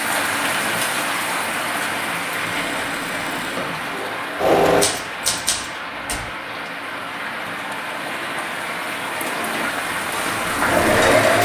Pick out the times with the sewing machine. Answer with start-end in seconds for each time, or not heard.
2.4-4.8, 9.2-11.3.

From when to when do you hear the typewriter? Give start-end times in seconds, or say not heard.
4.8-6.2.